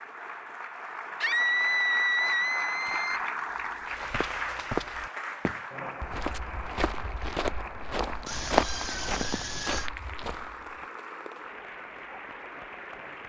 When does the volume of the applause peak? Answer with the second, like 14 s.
3 s.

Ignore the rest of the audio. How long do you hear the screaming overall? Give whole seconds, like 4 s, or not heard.
4 s.